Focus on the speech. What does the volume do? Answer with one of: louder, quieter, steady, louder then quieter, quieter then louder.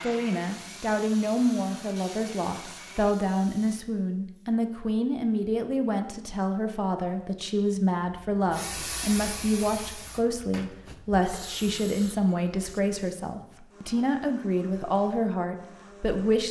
steady.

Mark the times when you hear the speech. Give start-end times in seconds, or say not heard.
0.0-16.4.